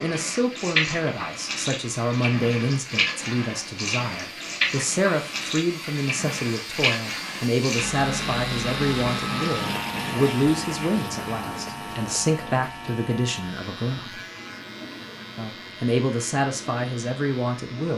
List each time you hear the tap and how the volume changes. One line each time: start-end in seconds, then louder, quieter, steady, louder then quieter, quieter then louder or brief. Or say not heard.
0.0-17.9 quieter.